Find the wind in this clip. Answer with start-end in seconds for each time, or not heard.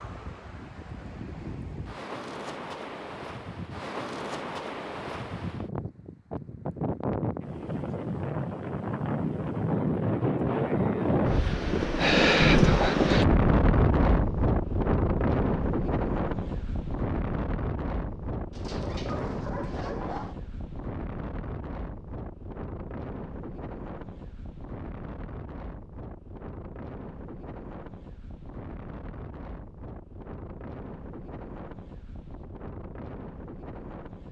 0.0-34.2.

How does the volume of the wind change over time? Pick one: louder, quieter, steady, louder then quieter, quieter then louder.
louder then quieter.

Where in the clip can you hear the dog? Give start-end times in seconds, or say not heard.
18.5-20.4.